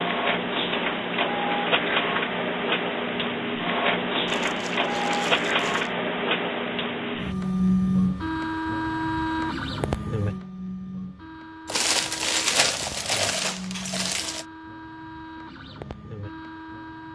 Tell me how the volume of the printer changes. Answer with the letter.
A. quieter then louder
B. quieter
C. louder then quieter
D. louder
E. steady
B.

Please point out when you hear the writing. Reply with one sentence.
The writing can't be heard in this clip.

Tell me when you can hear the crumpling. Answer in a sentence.
The crumpling can be heard from 4.2 to 5.9 s and from 11.7 to 14.4 s.